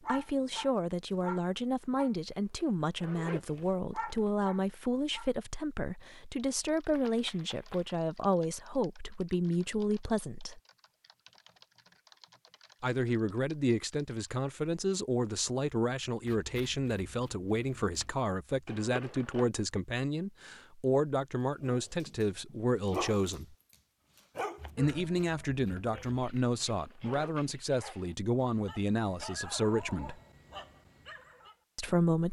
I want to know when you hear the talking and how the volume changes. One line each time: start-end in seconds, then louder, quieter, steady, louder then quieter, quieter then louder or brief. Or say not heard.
0.1-10.6 steady
12.8-23.6 steady
24.8-30.1 steady
31.8-32.2 brief.